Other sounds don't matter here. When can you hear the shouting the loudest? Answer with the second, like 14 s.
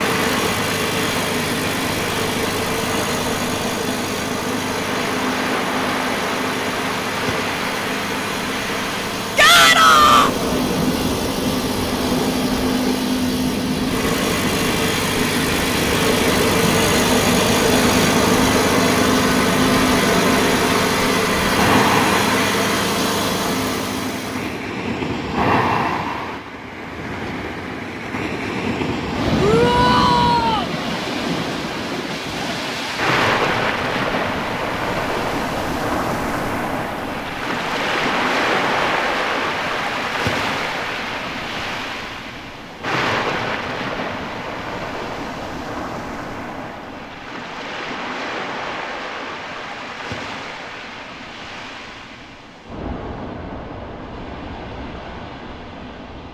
10 s.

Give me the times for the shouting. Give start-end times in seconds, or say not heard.
9.3-10.3, 29.4-30.6.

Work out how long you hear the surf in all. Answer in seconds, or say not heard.
56 s.